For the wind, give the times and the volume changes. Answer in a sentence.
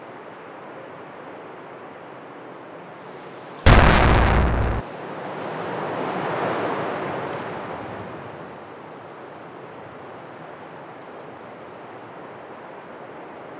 You can hear the wind from 0.0 to 13.5 s, getting louder then quieter.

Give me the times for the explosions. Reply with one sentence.
You can hear the explosions from 3.6 to 4.8 s.